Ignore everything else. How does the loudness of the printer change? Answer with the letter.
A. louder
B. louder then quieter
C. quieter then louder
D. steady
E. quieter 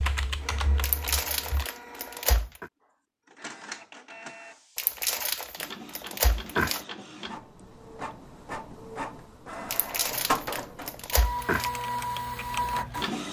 A.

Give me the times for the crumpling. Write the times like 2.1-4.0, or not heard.
0.8-2.7, 4.8-6.8, 9.7-11.7.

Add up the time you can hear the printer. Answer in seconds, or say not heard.
13 s.